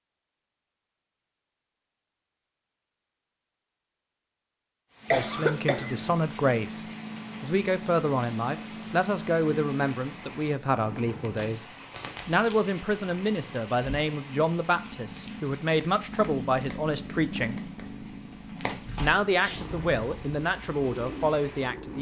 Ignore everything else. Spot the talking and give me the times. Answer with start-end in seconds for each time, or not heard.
5.1-11.7, 12.2-17.6, 18.9-21.9.